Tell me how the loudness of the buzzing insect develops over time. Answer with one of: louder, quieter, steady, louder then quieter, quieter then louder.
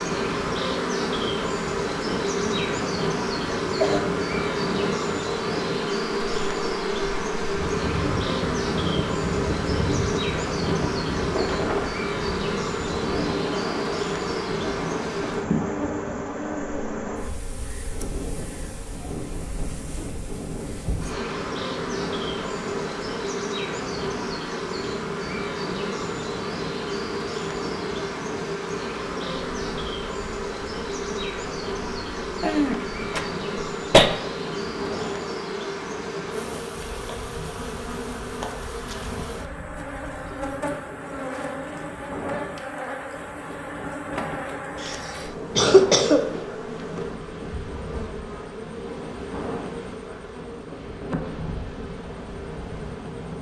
quieter.